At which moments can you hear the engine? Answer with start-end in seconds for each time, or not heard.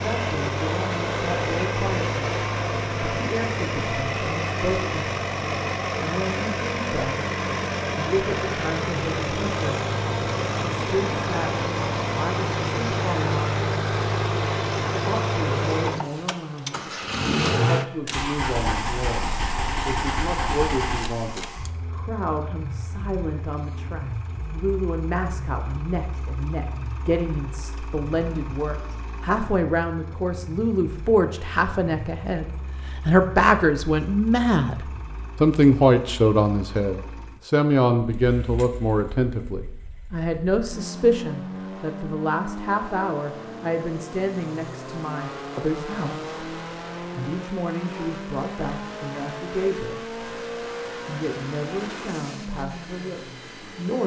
0.0-54.0.